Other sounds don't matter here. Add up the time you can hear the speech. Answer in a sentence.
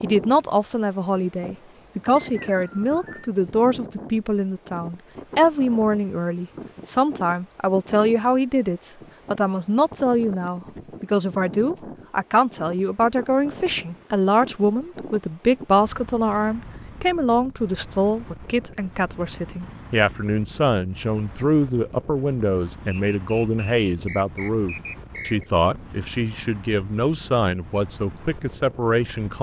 The speech can be heard for 29 seconds in total.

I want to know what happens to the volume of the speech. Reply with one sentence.
The loudness of the speech stays about the same.